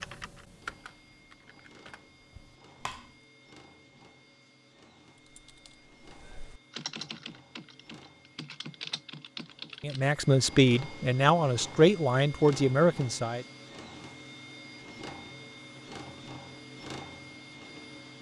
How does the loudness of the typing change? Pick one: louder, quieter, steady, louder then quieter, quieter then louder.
quieter then louder.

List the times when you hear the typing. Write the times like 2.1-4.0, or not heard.
0.0-3.1, 5.2-10.1.